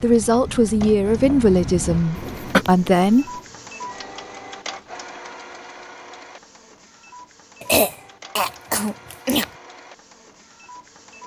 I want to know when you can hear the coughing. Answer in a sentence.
The coughing can be heard from 1.9 to 2.6 s and from 7.6 to 9.4 s.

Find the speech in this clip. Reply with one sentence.
The speech can be heard from 0.0 to 3.2 s.